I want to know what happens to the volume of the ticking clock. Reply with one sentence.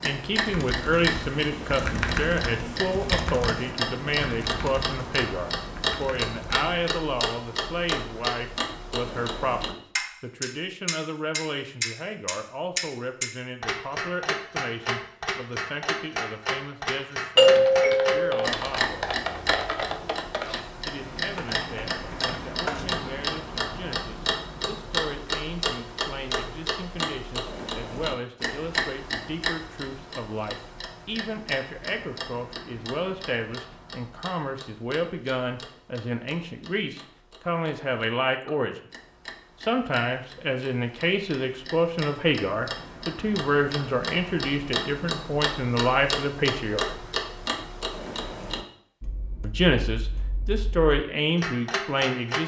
The loudness of the ticking clock goes down, then up.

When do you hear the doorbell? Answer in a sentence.
The doorbell can be heard from 17.4 to 18.5 s.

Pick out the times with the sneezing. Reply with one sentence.
The sneezing can't be heard in this clip.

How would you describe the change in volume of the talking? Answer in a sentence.
The volume of the talking goes down, then up.